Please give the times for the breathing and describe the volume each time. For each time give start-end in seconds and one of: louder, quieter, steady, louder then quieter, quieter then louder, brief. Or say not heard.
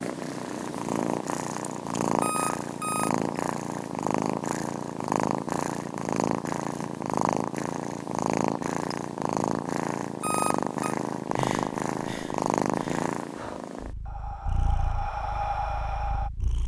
11.2-16.3 louder.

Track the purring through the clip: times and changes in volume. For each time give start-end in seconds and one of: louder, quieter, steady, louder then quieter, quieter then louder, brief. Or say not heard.
0.0-16.6 quieter.